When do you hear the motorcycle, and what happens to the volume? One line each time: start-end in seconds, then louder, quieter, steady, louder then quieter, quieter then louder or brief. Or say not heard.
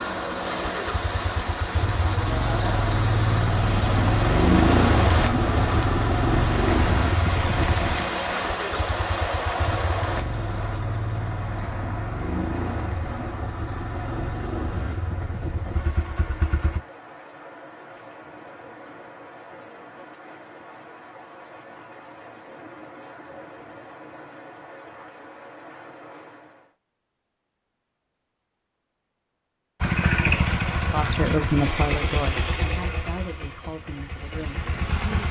0.1-16.8 louder then quieter
29.8-35.2 quieter.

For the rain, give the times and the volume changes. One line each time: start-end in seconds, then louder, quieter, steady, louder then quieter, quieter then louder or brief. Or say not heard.
0.0-26.8 quieter.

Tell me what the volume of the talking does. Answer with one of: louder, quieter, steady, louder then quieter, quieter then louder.
quieter.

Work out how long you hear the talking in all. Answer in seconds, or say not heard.
4 s.